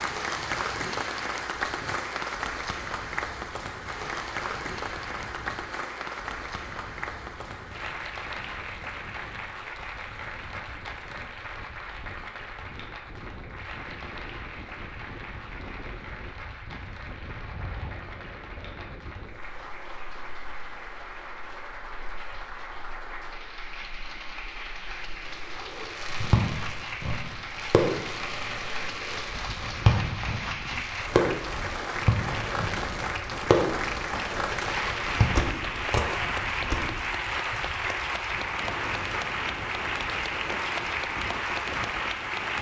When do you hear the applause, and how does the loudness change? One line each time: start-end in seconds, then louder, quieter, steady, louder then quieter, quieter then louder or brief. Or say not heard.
0.0-42.5 quieter then louder.